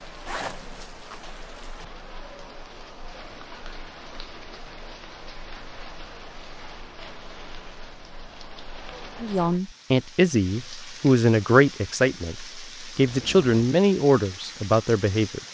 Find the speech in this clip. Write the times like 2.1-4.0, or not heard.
9.2-15.4.